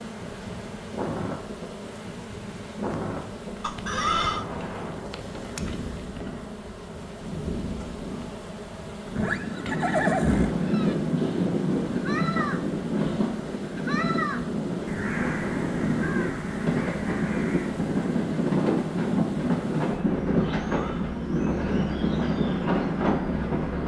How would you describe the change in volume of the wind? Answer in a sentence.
The loudness of the wind goes up.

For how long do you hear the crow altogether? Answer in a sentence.
The crow can be heard for 8 seconds in total.